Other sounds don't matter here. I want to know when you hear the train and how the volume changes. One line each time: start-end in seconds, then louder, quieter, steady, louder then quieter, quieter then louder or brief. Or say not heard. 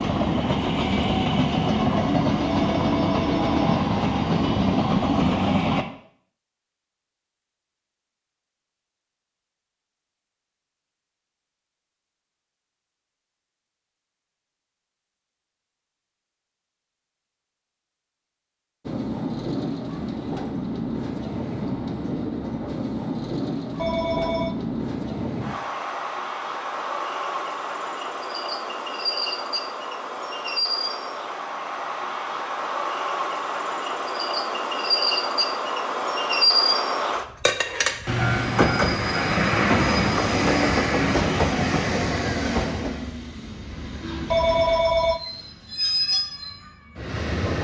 0.0-5.8 steady
18.9-47.5 louder then quieter.